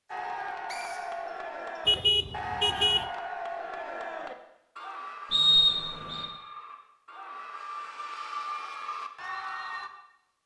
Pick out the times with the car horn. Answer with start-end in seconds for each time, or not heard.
1.9-3.0.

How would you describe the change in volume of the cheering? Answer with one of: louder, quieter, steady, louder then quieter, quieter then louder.
quieter then louder.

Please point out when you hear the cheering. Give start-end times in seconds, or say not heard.
0.1-9.9.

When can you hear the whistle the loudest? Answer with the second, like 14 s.
6 s.